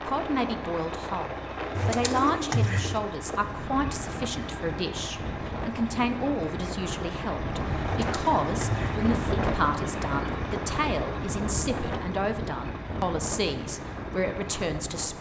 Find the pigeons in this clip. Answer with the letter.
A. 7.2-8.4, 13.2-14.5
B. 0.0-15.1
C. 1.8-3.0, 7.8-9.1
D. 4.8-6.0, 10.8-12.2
C.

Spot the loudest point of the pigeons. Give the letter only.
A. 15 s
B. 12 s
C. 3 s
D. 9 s
C.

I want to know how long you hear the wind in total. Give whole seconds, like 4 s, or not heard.
15 s.